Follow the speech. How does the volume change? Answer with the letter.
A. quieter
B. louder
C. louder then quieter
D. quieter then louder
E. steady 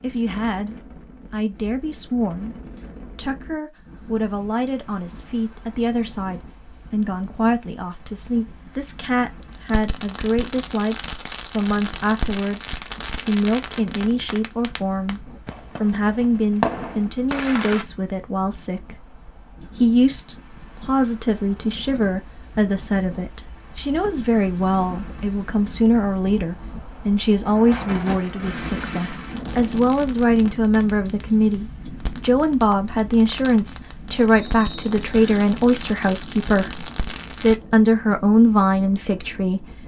B.